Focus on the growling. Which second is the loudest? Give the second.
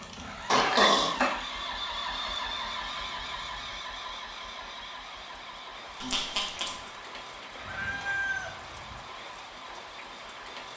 1 s.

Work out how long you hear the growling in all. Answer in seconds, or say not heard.
2 s.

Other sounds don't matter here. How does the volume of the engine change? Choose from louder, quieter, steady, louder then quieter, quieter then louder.
quieter.